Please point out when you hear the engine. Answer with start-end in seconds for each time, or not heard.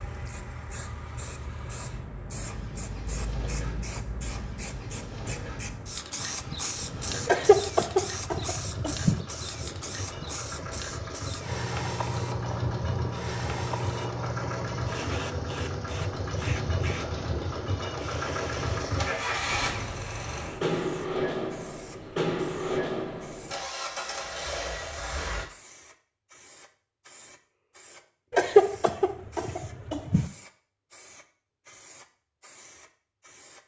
0.0-25.4.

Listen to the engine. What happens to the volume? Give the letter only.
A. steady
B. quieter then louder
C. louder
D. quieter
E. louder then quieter
C.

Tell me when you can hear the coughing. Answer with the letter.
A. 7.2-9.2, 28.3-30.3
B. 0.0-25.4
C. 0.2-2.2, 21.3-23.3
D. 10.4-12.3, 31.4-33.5
A.